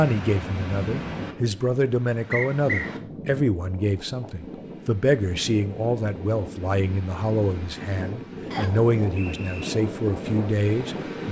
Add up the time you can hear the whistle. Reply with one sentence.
The whistle can be heard for 2 seconds in total.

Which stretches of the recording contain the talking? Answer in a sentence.
The talking can be heard from 0.0 to 11.2 s.